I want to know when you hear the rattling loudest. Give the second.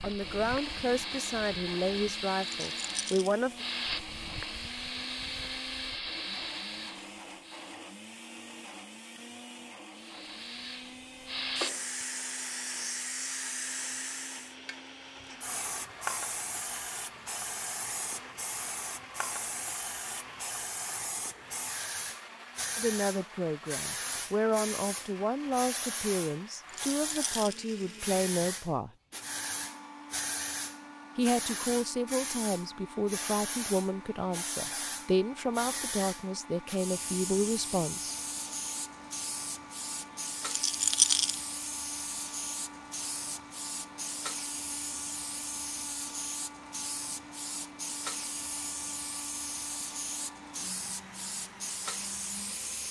41 s.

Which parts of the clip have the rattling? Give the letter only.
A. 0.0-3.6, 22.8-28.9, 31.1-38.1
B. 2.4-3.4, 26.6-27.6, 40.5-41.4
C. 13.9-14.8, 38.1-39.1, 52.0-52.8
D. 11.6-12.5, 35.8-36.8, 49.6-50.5
B.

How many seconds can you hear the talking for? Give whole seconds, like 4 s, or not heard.
17 s.